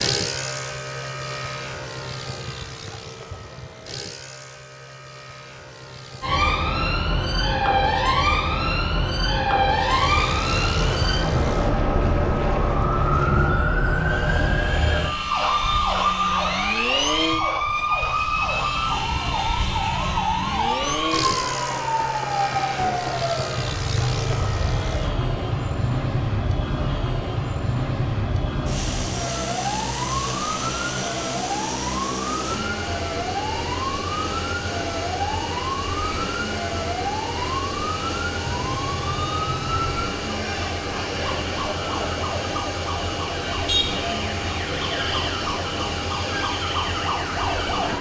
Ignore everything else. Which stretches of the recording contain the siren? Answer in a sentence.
You can hear the siren from 6.2 to 47.9 s.